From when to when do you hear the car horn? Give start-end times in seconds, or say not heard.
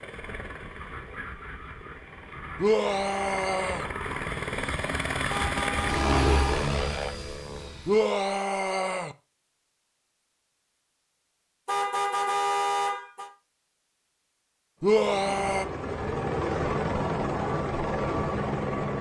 5.3-6.6, 11.7-13.3.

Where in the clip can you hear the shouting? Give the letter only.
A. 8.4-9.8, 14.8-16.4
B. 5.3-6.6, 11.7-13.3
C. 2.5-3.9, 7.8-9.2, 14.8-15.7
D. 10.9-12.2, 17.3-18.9
C.